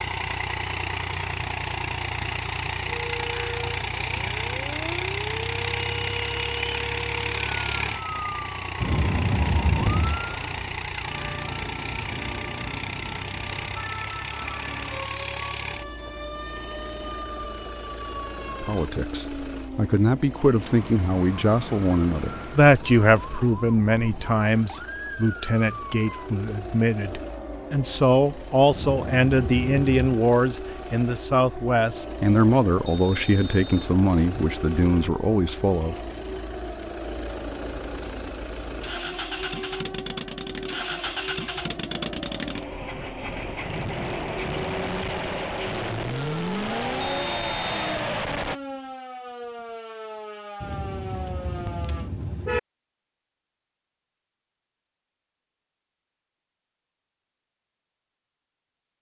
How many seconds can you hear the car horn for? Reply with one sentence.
The car horn can be heard for 5 seconds in total.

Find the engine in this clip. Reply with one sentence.
The engine can be heard from 0.0 to 48.6 s.